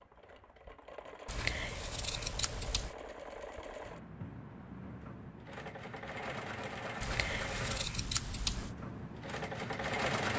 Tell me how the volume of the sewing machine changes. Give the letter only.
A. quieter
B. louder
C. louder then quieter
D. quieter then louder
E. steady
B.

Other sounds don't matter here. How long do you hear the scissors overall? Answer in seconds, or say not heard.
3 s.